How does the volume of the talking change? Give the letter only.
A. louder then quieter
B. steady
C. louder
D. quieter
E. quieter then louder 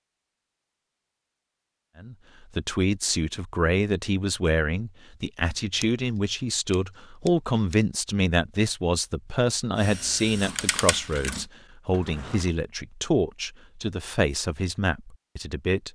B.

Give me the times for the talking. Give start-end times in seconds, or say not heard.
1.9-15.9.